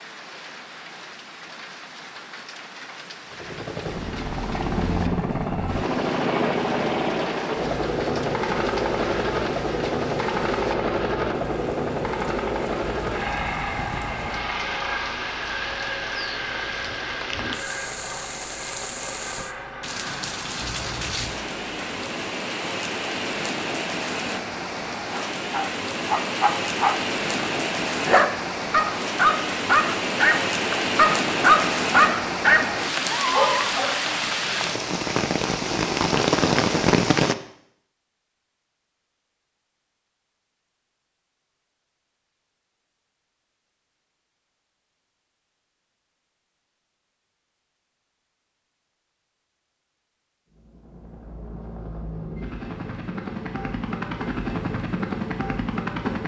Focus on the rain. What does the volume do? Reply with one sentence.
The volume of the rain goes up.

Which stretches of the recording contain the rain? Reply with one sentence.
You can hear the rain from 0.0 to 37.4 s.